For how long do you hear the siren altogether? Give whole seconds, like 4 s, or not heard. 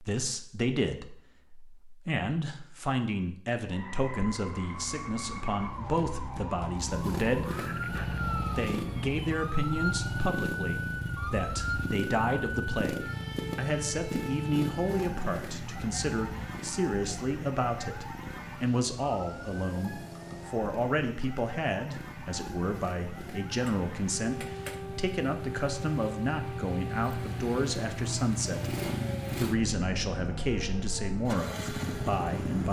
29 s.